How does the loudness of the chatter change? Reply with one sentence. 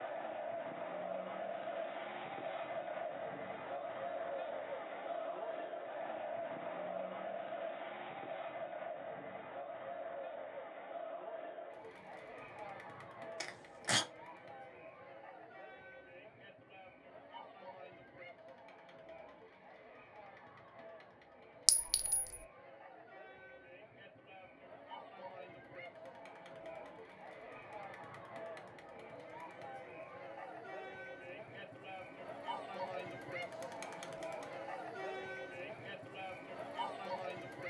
The volume of the chatter goes down, then up.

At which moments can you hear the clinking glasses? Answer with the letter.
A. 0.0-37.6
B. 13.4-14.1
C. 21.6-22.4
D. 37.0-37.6
C.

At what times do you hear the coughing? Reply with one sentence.
You can hear the coughing from 13.4 to 14.1 s.